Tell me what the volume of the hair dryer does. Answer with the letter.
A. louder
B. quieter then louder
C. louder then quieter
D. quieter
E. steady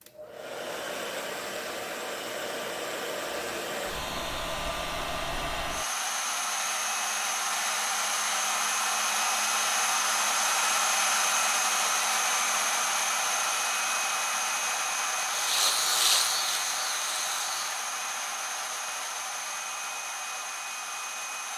C.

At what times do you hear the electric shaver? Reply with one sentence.
You can hear the electric shaver from 15.2 to 17.9 s.